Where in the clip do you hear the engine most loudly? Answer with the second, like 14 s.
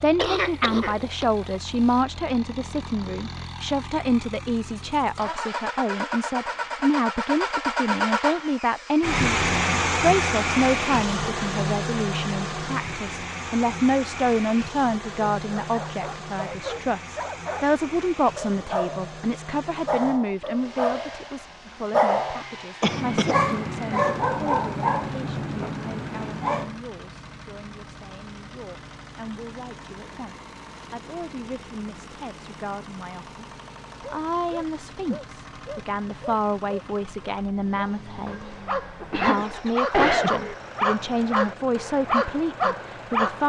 10 s.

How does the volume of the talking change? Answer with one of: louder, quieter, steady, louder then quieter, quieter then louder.
quieter then louder.